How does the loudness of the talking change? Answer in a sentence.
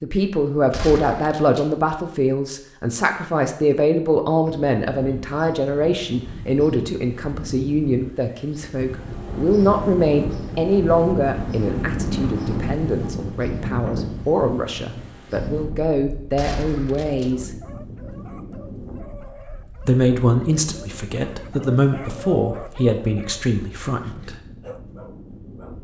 The loudness of the talking stays about the same.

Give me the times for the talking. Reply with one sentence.
The talking can be heard from 0.0 to 17.5 s and from 19.9 to 24.4 s.